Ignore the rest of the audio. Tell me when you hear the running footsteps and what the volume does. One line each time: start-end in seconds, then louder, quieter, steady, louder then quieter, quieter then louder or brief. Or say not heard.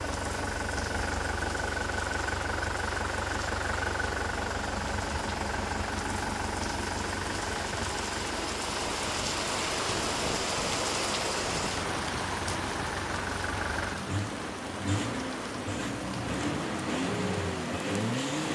not heard.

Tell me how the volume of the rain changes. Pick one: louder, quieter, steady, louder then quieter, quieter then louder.
louder then quieter.